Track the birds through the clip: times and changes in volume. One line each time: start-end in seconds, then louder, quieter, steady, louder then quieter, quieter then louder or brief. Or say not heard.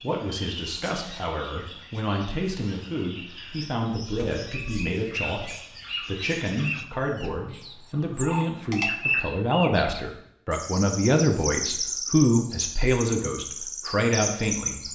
0.0-14.9 louder.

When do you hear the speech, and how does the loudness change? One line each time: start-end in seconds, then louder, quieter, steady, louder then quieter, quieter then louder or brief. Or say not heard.
0.0-14.9 louder.